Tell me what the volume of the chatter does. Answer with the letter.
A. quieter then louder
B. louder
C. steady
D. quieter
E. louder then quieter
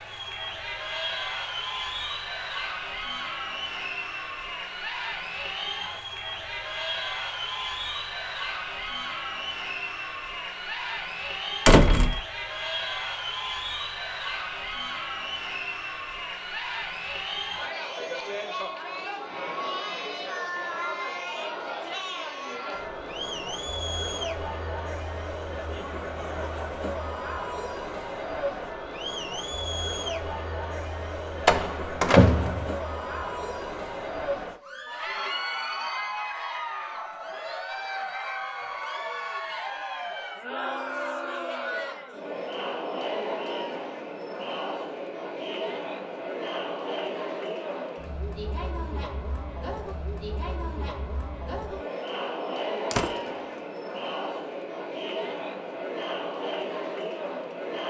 C.